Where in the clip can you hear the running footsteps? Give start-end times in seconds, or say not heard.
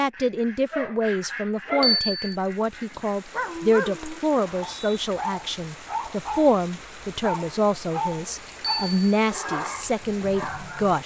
not heard.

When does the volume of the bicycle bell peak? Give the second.
2 s.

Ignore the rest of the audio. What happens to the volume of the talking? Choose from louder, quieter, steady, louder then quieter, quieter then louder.
steady.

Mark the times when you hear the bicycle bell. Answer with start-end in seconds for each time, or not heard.
1.8-2.4, 8.6-9.2.